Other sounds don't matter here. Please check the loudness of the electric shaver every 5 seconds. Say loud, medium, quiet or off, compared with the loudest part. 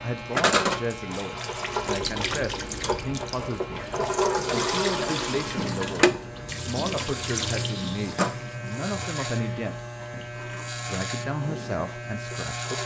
medium, loud, loud.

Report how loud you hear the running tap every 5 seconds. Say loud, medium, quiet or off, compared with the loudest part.
loud, loud, quiet.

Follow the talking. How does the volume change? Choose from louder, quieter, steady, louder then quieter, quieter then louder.
steady.